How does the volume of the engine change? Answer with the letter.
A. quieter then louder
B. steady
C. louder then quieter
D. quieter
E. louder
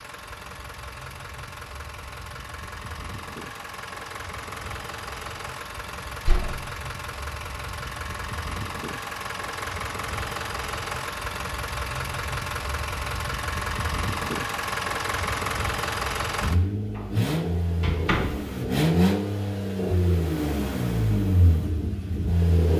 E.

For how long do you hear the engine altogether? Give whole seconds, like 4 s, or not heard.
23 s.